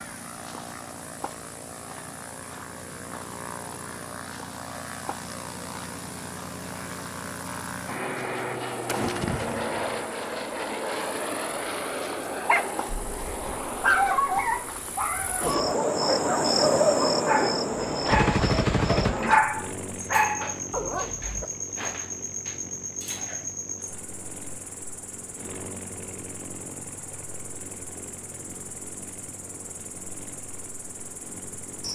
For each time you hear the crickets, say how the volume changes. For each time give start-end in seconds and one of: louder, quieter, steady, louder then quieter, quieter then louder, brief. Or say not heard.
0.0-31.8 louder then quieter.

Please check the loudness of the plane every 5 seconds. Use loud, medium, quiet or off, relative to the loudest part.
medium, loud, loud, medium, medium, medium, quiet.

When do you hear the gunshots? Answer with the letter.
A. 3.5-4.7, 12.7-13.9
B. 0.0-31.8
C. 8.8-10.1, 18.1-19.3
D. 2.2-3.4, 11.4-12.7
C.